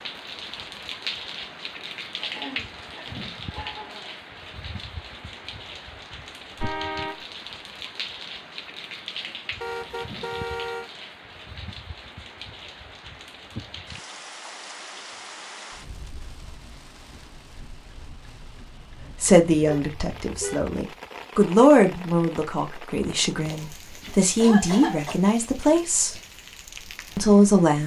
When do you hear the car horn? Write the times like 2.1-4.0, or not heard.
6.6-7.2, 9.6-10.9, 19.6-20.8.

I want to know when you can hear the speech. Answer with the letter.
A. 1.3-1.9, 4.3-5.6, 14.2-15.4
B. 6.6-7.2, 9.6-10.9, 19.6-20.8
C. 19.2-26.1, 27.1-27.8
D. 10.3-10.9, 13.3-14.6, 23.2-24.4
C.